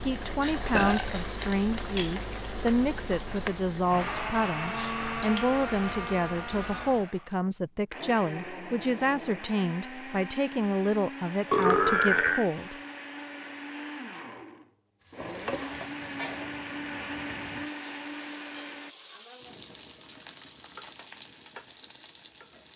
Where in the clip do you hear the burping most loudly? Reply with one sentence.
The loudest moment of the burping is at 12 seconds.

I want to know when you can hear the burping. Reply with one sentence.
You can hear the burping from 0.7 to 1.1 s and from 11.5 to 12.5 s.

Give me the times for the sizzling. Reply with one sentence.
You can hear the sizzling from 0.0 to 7.1 s and from 15.1 to 22.7 s.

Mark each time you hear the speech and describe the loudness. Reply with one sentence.
The speech can be heard from 0.1 to 12.8 s, at a steady volume.